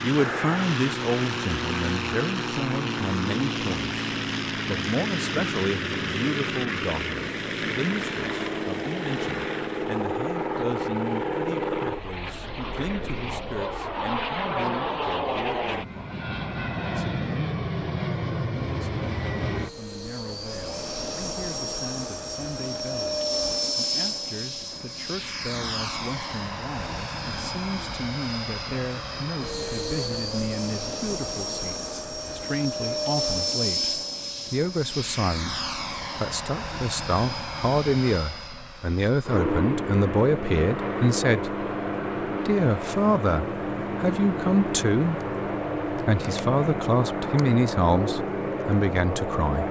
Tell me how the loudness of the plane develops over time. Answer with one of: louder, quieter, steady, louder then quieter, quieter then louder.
steady.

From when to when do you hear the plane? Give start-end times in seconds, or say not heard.
0.0-49.6.